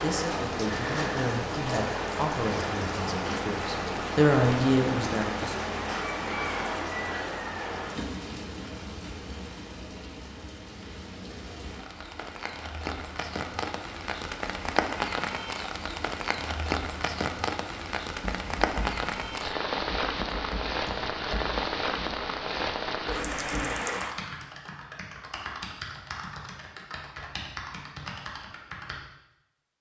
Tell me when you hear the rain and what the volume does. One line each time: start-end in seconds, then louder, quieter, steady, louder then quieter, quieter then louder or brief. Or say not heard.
0.0-24.1 quieter then louder.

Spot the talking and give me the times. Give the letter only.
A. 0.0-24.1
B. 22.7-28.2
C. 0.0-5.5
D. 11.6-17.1
C.